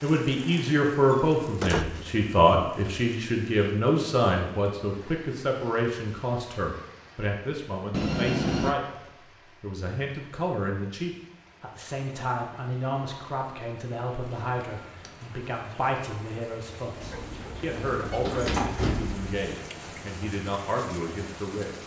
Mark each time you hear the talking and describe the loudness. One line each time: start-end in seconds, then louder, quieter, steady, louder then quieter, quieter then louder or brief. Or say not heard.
0.0-9.0 quieter
9.6-21.8 steady.